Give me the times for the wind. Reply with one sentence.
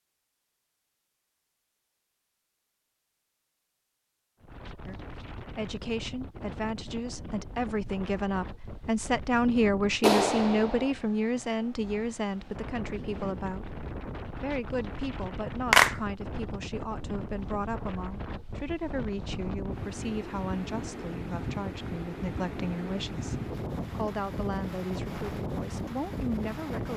You can hear the wind from 4.4 to 26.9 s.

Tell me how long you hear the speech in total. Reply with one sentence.
You can hear the speech for 22 seconds altogether.